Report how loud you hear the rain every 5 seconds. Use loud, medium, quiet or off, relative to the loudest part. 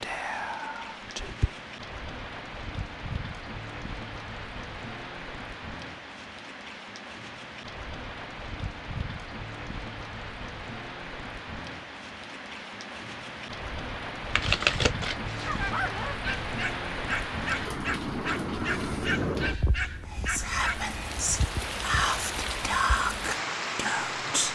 medium, medium, medium, loud, loud.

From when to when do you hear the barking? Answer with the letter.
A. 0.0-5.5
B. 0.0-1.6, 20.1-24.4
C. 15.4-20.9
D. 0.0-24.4
C.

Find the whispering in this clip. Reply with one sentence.
You can hear the whispering from 0.0 to 1.6 s and from 20.1 to 24.4 s.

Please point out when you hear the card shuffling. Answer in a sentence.
The card shuffling can be heard from 14.3 to 15.8 s.